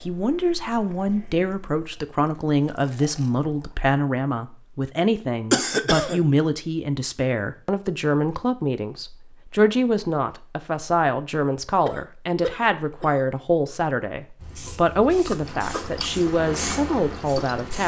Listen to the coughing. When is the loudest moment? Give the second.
6 s.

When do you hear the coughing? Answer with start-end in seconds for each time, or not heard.
5.5-6.2, 11.8-13.2.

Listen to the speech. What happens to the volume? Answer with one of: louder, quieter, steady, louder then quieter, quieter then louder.
steady.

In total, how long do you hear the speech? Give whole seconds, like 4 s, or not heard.
18 s.